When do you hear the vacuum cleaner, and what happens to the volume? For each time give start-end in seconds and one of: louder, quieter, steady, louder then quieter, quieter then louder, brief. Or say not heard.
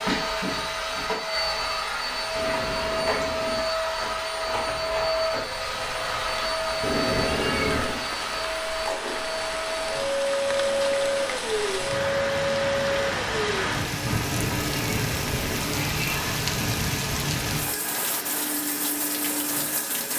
0.0-20.1 quieter.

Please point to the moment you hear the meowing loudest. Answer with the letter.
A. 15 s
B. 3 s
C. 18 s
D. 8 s
D.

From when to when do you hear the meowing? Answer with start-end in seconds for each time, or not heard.
2.4-3.6, 6.8-8.1, 14.1-16.0.